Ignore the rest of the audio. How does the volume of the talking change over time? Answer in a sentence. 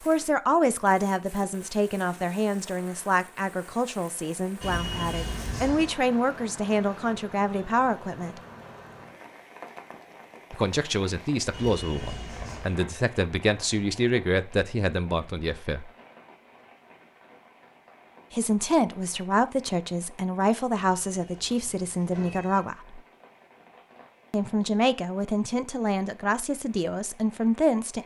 The loudness of the talking stays about the same.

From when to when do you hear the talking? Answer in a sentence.
You can hear the talking from 0.0 to 8.4 s, from 10.5 to 15.9 s, from 18.3 to 23.0 s and from 24.3 to 28.0 s.